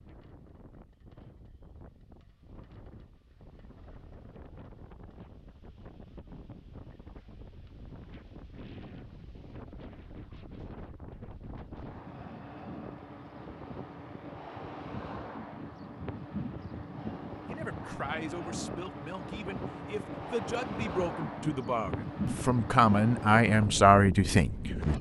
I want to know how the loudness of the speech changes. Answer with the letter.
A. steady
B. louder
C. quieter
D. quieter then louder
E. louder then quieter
B.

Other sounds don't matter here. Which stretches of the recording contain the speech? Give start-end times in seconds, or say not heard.
17.4-24.9.